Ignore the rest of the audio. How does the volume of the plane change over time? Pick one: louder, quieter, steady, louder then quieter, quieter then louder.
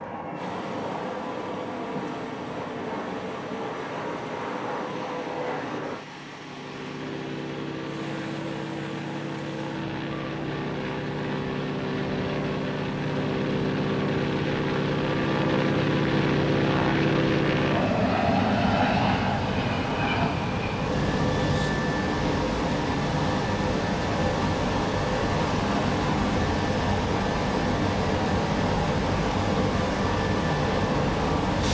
louder then quieter.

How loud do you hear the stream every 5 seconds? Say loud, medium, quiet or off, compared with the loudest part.
quiet, quiet, quiet, medium, loud, loud, loud.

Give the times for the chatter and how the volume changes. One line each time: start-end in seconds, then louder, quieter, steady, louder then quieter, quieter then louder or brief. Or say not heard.
not heard.